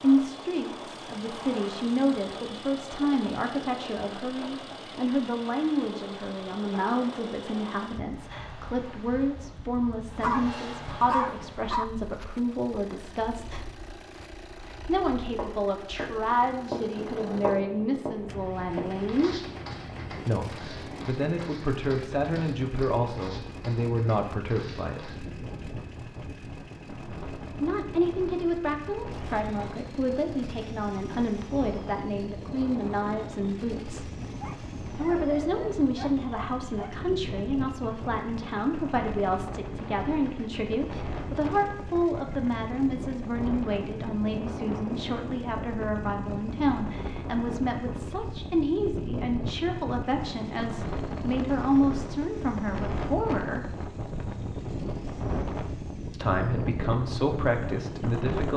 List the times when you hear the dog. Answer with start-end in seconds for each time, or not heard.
10.2-11.8, 34.4-37.0.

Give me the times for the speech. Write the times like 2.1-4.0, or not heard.
0.0-13.7, 14.8-19.4, 20.2-25.1, 27.6-34.1, 35.0-53.7, 56.1-58.5.